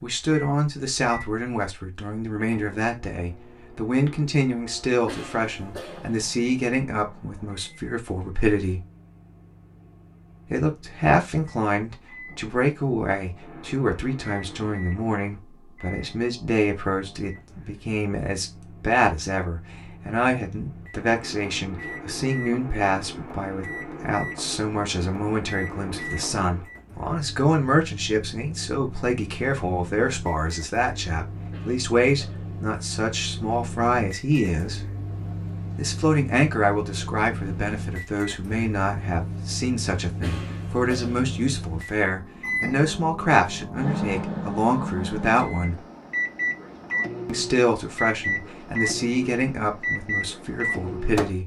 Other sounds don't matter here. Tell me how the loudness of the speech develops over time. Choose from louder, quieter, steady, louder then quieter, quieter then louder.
steady.